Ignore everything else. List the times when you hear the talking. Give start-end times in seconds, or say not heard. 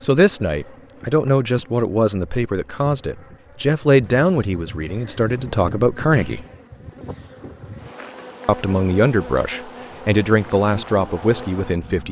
0.0-6.5, 8.4-12.0.